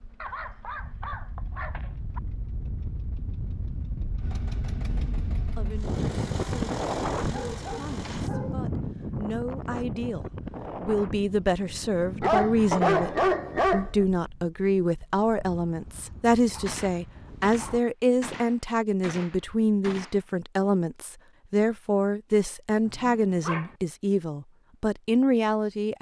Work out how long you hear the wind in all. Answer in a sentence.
You can hear the wind for 18 seconds altogether.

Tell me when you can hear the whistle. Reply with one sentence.
You can't hear the whistle here.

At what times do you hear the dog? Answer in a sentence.
You can hear the dog from 0.2 to 2.2 s, from 7.2 to 8.6 s, from 12.2 to 14.1 s, from 16.5 to 17.8 s and from 22.9 to 23.8 s.